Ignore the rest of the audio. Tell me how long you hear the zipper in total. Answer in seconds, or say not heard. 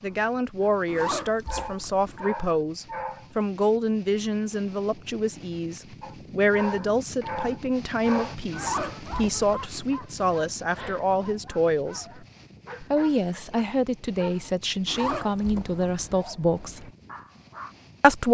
4 s.